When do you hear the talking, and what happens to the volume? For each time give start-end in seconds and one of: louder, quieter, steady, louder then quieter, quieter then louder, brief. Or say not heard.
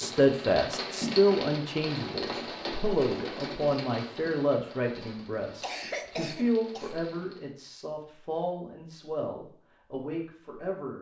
0.0-10.9 quieter.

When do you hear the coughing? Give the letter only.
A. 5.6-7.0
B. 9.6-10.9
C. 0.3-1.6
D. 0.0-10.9
A.